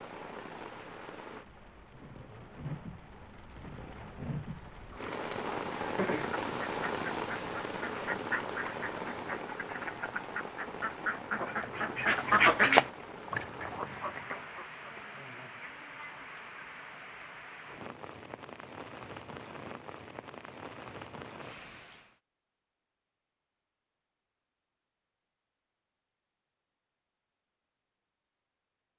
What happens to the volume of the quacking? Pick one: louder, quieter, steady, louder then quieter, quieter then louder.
louder then quieter.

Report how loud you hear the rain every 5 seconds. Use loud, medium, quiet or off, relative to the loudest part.
medium, loud, medium, medium, medium, off.